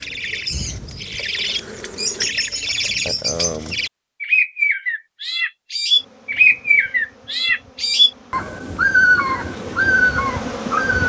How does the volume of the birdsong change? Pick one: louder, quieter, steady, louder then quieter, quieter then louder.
louder.